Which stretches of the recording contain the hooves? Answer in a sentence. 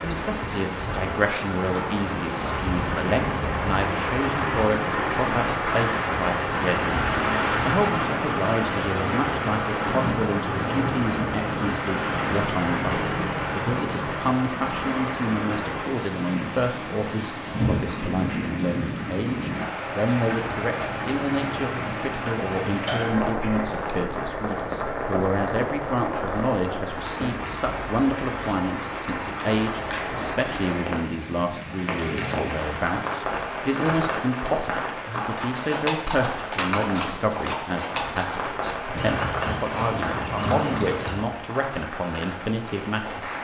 You can hear the hooves from 35.2 to 41.3 s.